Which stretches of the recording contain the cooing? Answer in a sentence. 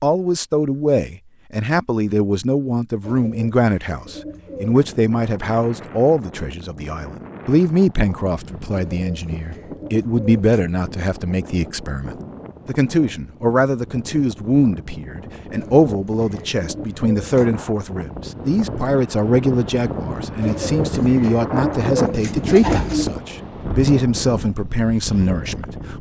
The cooing can be heard from 3.0 to 4.8 s, from 8.9 to 10.7 s, from 15.6 to 17.6 s and from 20.4 to 23.1 s.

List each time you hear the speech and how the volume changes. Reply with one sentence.
The speech can be heard from 0.0 to 25.9 s, at a steady volume.